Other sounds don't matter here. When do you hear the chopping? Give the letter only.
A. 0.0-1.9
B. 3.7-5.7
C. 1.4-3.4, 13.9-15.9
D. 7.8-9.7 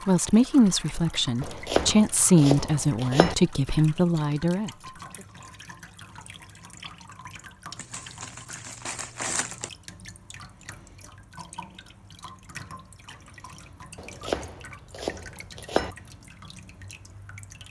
C.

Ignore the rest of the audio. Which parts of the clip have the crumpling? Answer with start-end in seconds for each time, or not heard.
7.8-9.7.